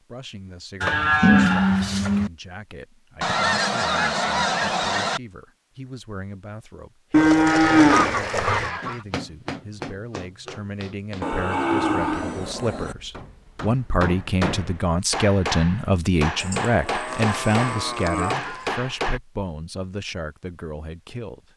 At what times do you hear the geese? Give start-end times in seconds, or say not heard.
3.2-5.2, 7.5-9.1, 17.1-18.8.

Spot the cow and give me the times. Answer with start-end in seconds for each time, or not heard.
0.8-2.3, 7.1-8.7, 11.2-12.9, 16.4-18.4.